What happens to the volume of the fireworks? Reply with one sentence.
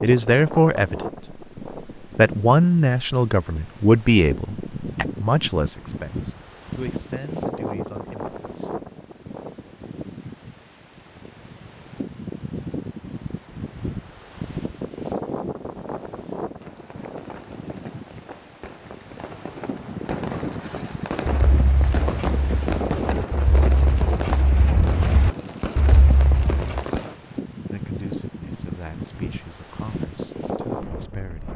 The loudness of the fireworks goes up.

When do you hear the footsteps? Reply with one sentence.
You can hear the footsteps from 21.2 to 26.9 s.